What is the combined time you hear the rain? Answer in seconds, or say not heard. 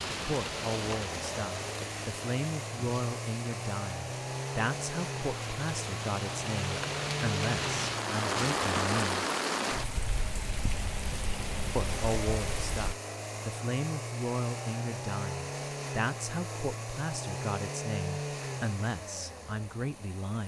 13 s.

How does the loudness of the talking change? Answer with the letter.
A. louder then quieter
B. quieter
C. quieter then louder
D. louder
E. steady
E.